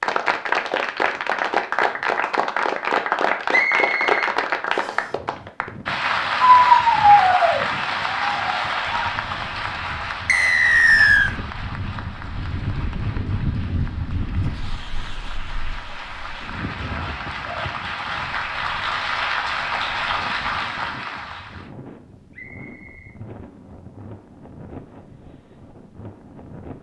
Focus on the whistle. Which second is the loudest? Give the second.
11 s.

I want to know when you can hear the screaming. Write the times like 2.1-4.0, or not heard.
6.5-7.7.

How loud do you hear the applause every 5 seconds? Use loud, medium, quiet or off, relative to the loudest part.
loud, loud, quiet, medium, medium, off.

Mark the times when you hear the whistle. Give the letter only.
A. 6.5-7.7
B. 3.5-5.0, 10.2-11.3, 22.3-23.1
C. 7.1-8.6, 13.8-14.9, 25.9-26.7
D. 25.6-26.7
B.